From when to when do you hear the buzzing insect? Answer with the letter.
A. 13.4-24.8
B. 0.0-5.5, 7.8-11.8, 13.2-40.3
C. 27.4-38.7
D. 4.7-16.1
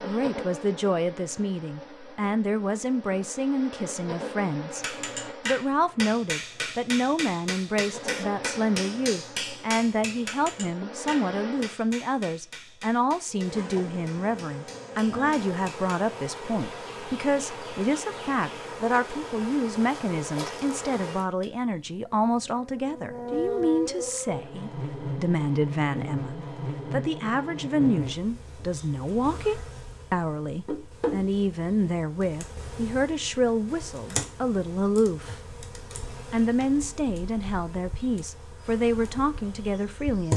B.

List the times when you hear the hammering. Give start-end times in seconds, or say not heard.
4.7-16.1.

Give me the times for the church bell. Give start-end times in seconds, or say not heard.
not heard.